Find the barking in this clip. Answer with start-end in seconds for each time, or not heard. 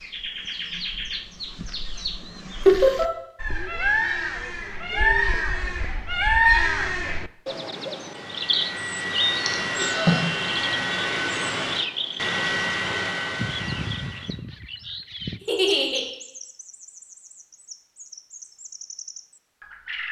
not heard.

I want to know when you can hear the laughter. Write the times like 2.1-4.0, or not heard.
2.6-3.1, 9.4-10.3, 15.4-16.1.